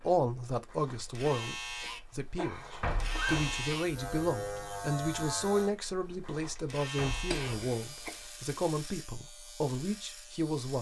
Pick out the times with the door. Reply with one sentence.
You can hear the door from 2.8 to 3.7 s and from 7.0 to 7.7 s.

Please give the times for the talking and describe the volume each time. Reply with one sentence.
The talking can be heard from 0.0 to 10.7 s, at a steady volume.